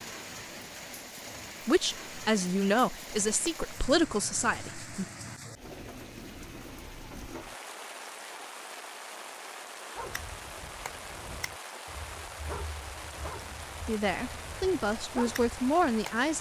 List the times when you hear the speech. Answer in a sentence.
You can hear the speech from 1.6 to 5.0 s and from 13.8 to 16.3 s.